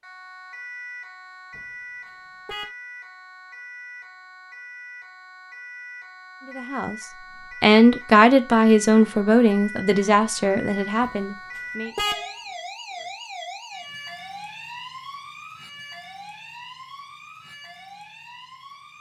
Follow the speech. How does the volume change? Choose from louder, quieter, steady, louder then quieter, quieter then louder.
quieter.